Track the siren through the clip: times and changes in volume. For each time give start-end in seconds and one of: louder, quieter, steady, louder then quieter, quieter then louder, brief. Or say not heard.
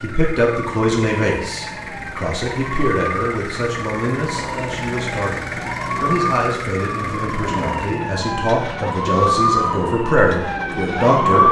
0.0-11.4 louder.